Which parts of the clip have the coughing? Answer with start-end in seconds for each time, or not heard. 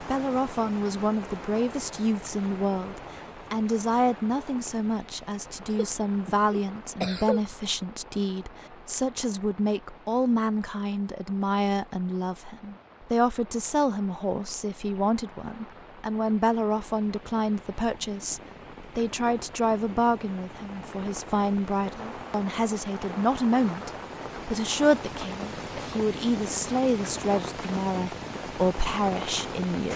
5.7-7.4.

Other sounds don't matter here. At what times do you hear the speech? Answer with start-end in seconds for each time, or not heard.
0.0-29.9.